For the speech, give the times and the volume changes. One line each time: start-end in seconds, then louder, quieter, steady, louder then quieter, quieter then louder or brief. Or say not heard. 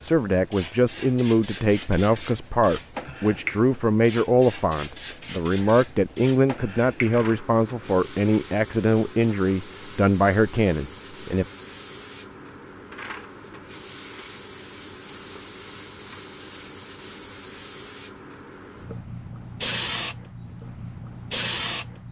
0.0-11.4 steady.